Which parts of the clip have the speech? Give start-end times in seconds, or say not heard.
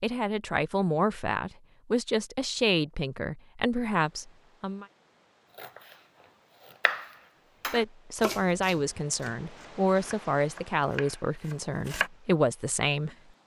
0.0-4.8, 7.7-13.2.